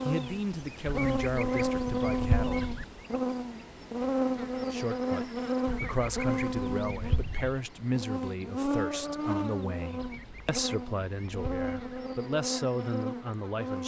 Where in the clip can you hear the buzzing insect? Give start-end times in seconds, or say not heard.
0.0-13.8.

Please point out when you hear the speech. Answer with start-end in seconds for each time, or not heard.
0.0-2.6, 4.7-13.8.